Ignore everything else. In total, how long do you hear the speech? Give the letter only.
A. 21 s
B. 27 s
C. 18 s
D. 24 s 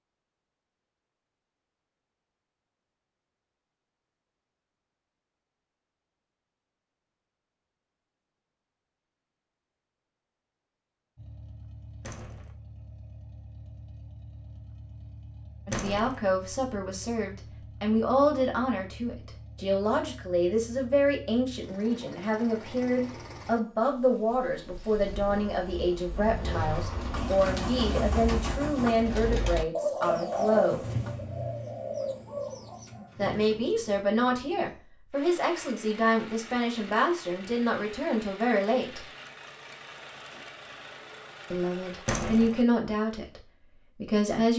D.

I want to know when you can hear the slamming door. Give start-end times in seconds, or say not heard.
12.0-12.6, 15.7-16.2, 42.0-42.5.